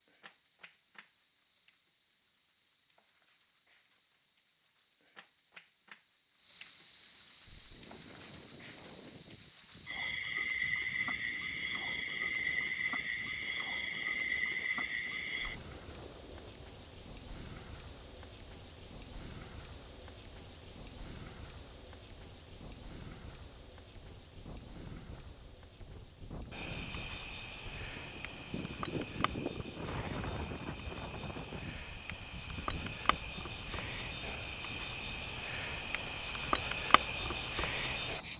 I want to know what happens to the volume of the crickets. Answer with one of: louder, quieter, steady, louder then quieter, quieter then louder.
louder then quieter.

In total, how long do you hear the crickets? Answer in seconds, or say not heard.
38 s.